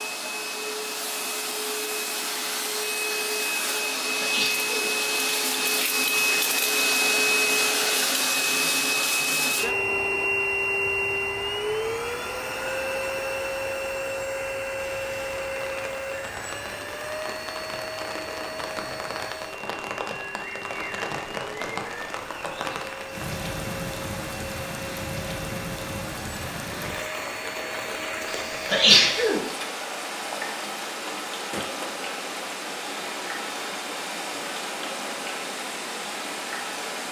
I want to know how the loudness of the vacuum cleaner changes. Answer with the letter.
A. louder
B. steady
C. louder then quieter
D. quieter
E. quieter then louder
D.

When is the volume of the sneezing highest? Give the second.
29 s.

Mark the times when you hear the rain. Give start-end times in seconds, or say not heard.
14.8-37.0.